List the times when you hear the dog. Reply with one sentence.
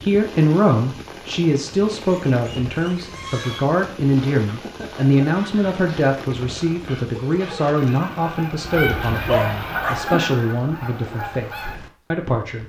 You can hear the dog from 8.7 to 10.1 s.